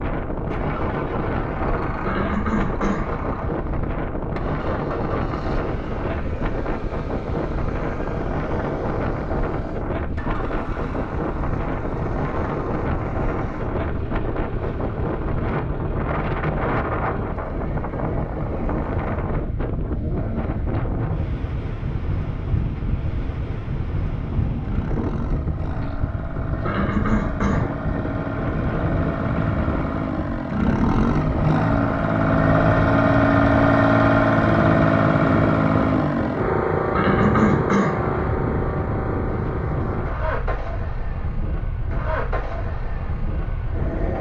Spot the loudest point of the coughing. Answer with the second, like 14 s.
37 s.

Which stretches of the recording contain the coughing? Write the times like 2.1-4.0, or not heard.
2.0-3.1, 26.6-27.7, 36.9-38.0.